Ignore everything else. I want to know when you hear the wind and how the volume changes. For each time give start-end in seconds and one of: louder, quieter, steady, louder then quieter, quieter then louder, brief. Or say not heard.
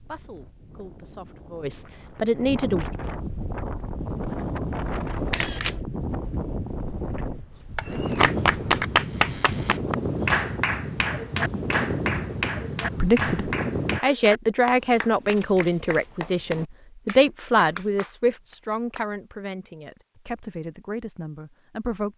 0.0-14.0 louder.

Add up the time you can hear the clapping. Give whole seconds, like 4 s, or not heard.
11 s.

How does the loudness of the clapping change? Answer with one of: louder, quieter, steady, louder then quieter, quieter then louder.
quieter.